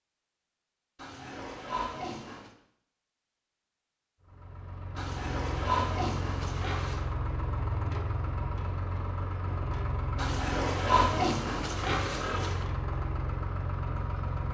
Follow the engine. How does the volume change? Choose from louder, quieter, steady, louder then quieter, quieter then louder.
steady.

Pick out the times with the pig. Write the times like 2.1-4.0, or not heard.
0.9-2.5, 5.0-7.1, 10.2-12.7.